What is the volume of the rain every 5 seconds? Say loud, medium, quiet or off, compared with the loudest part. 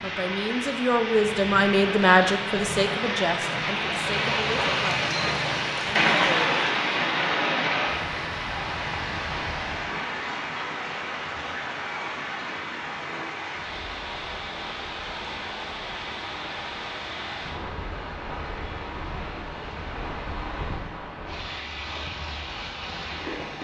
loud, loud, medium, medium, medium.